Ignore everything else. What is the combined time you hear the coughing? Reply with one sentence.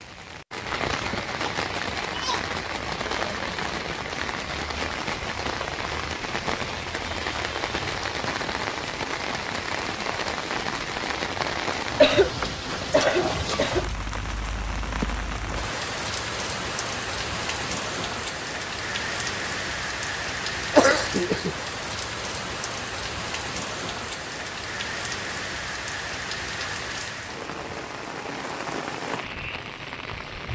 You can hear the coughing for 4 seconds altogether.